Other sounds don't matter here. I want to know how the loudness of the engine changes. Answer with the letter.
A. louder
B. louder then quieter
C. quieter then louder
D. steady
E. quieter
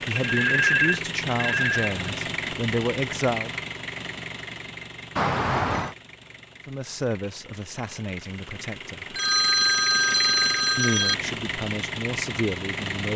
C.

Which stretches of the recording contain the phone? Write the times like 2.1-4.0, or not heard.
0.1-1.9, 5.2-6.0, 9.2-11.2.